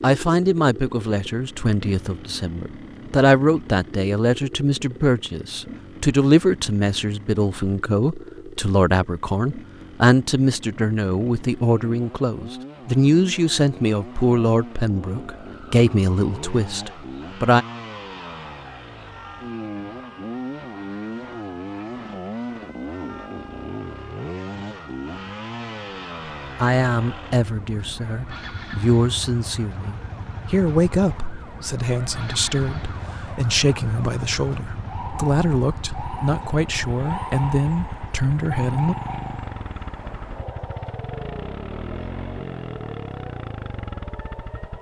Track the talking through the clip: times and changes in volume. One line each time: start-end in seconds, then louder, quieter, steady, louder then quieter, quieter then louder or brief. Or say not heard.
0.0-17.6 steady
26.6-39.0 steady.